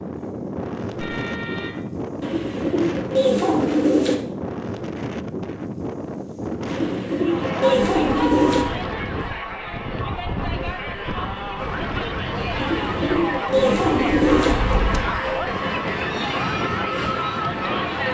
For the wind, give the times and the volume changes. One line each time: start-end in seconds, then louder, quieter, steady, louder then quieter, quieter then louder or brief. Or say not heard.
0.0-18.0 steady.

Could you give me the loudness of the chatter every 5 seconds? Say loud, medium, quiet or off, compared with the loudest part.
off, medium, loud, loud.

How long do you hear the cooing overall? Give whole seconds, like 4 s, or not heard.
6 s.